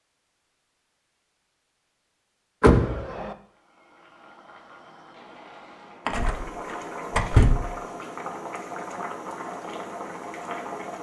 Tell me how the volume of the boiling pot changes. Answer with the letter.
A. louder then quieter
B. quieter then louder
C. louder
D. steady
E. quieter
C.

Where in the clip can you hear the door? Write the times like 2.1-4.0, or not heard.
2.6-3.3, 6.0-6.5, 7.1-7.6.